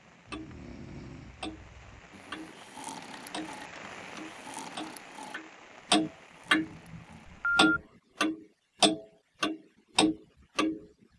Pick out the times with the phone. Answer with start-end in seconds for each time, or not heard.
3.0-3.8, 7.2-7.8.